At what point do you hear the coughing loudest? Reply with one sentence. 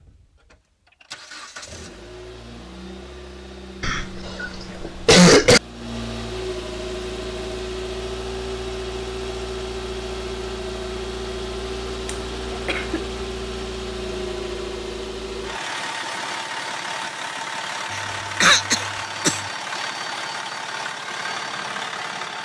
The loudest moment of the coughing is at 5 seconds.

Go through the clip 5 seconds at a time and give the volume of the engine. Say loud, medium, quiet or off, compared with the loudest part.
medium, loud, loud, loud, loud.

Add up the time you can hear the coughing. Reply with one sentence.
The coughing can be heard for 4 seconds in total.